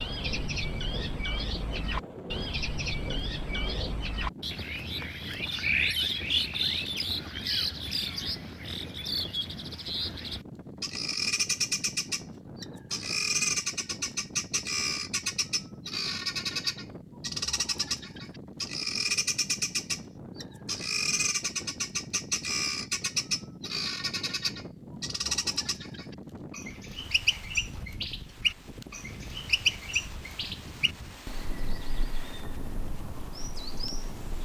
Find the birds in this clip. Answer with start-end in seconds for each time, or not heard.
0.0-34.3.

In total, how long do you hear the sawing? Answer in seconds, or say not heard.
4 s.